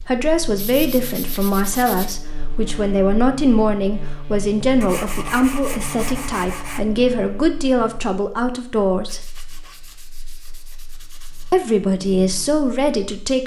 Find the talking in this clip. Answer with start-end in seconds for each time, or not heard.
0.0-9.3, 11.5-13.4.